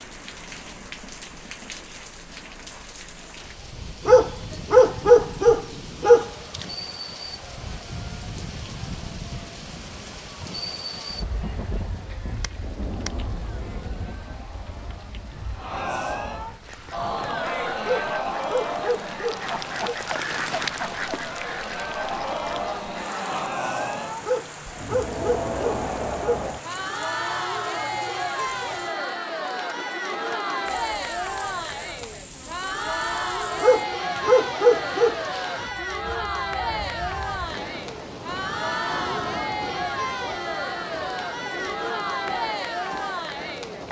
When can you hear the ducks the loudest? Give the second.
21 s.